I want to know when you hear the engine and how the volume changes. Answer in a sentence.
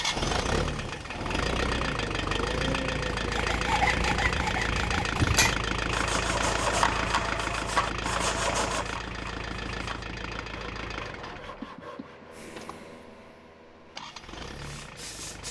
You can hear the engine from 0.0 to 15.4 s, getting quieter.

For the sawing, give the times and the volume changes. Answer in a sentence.
The sawing can be heard from 3.2 to 12.3 s, getting quieter.